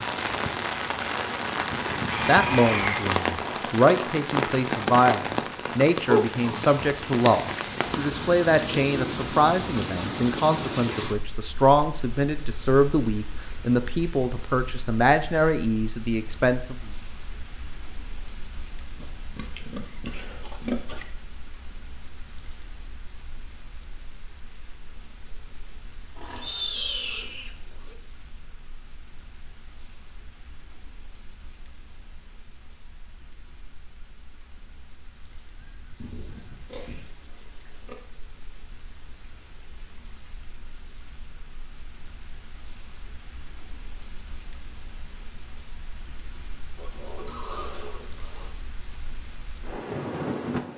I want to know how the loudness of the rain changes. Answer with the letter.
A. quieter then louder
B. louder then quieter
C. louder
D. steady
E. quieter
A.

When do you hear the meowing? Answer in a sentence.
The meowing can't be heard in this clip.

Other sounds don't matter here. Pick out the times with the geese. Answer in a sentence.
The geese can be heard from 35.5 to 37.0 s.